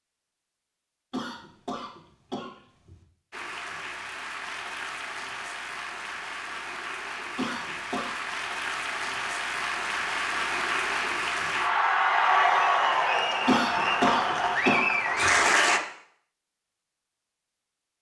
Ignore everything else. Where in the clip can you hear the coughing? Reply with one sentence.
You can hear the coughing from 1.1 to 3.0 s, from 7.3 to 8.2 s and from 13.4 to 15.3 s.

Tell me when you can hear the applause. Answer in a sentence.
The applause can be heard from 3.3 to 15.8 s.